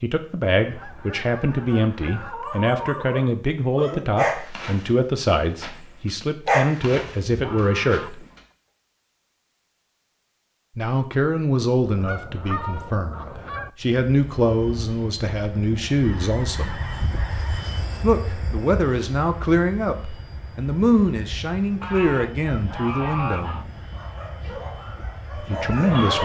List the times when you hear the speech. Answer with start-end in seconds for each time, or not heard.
0.0-8.2, 10.8-16.8, 18.0-23.6, 25.3-26.2.